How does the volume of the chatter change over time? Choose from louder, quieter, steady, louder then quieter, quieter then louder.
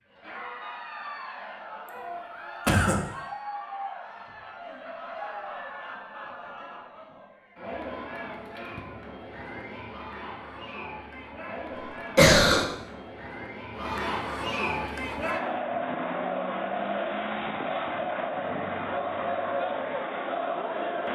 louder.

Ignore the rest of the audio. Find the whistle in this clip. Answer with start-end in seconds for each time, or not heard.
not heard.